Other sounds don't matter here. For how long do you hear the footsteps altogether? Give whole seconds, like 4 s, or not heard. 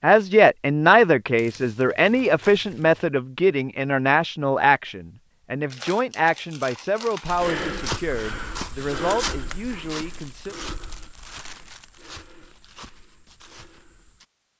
7 s.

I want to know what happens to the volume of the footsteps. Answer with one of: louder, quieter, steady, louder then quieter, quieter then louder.
quieter.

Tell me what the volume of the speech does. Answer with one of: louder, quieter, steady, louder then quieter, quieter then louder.
quieter.